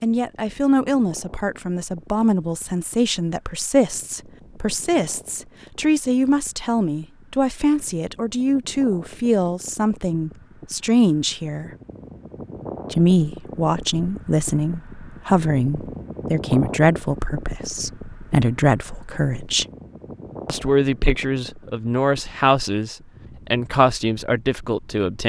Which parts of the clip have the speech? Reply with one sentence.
You can hear the speech from 0.0 to 11.7 s, from 12.9 to 19.6 s and from 20.4 to 25.2 s.